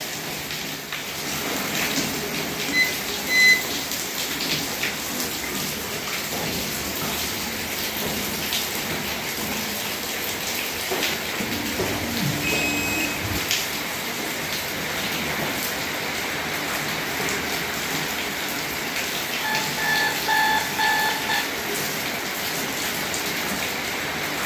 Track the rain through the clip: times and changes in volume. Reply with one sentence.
You can hear the rain from 0.0 to 24.4 s, at a steady volume.